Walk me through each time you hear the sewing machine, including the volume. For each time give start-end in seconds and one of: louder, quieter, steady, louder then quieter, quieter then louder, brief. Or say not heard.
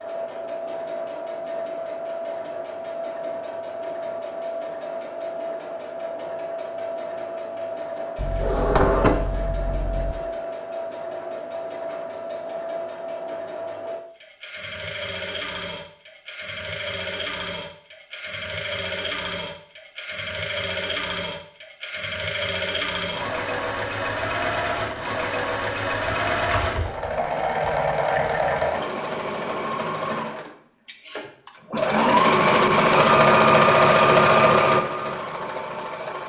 0.0-36.2 louder.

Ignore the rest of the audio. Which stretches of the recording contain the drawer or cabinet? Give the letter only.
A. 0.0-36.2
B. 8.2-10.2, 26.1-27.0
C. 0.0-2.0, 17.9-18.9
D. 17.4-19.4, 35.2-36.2
B.